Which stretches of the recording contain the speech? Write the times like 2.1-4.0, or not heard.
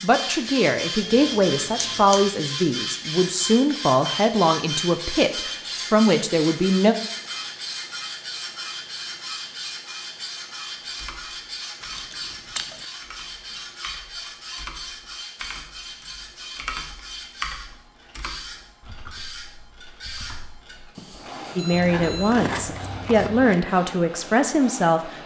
0.0-7.0, 21.6-25.1.